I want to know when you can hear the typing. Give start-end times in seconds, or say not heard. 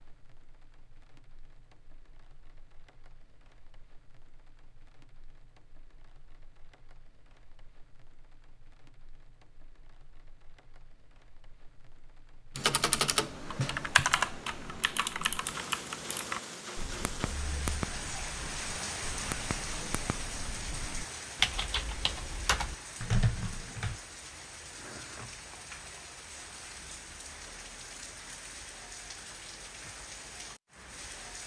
12.6-24.0.